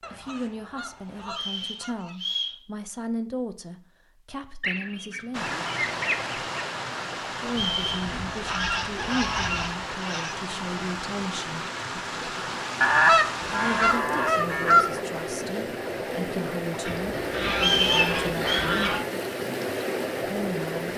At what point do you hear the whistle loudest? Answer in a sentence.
The volume of the whistle peaks at 18 seconds.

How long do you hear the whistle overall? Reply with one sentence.
The whistle can be heard for 3 seconds in total.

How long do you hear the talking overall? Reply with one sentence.
You can hear the talking for 16 seconds altogether.